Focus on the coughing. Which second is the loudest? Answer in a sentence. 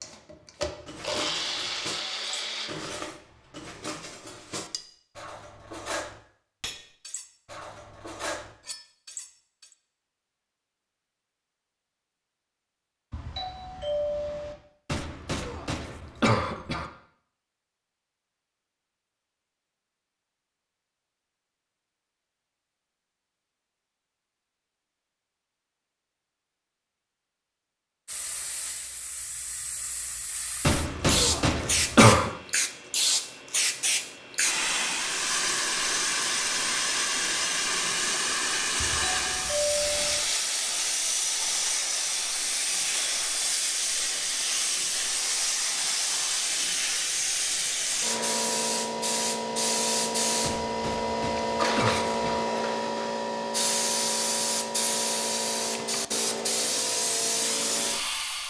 The loudest moment of the coughing is at 32 seconds.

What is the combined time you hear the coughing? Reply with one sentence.
The coughing can be heard for 6 seconds in total.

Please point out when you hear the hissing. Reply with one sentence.
The hissing can be heard from 28.1 to 58.4 s.